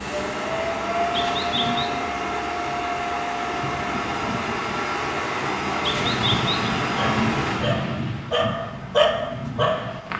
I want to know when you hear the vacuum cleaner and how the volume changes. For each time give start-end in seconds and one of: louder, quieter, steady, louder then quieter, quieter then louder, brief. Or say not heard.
0.0-10.1 quieter.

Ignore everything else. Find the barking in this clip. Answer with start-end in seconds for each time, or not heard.
7.0-10.1.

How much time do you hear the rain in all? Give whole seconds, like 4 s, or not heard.
10 s.